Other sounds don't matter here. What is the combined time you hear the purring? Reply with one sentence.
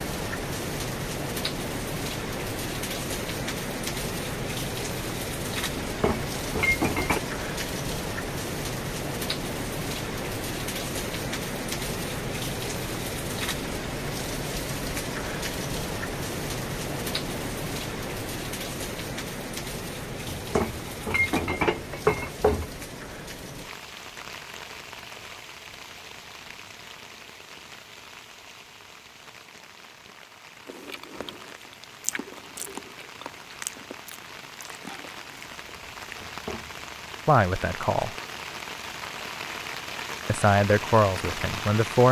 You can't hear the purring here.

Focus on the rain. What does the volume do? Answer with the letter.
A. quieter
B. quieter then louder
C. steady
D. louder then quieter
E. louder
B.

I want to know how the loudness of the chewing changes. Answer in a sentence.
The volume of the chewing goes up, then down.